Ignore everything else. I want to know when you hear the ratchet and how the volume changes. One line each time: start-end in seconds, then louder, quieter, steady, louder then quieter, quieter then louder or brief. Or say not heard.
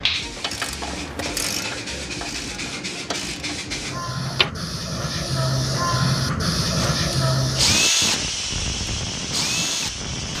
0.0-4.5 quieter.